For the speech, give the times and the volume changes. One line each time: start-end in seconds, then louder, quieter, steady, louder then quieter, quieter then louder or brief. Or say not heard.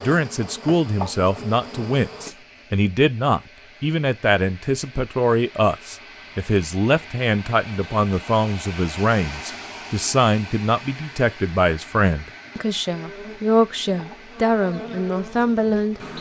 0.0-16.0 steady.